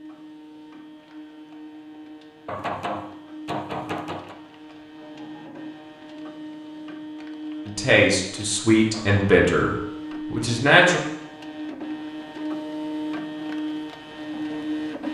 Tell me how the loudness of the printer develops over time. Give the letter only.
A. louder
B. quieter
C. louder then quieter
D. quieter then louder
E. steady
A.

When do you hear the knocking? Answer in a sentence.
You can hear the knocking from 2.5 to 4.3 s and from 8.9 to 9.4 s.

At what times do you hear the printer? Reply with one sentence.
You can hear the printer from 0.0 to 15.0 s.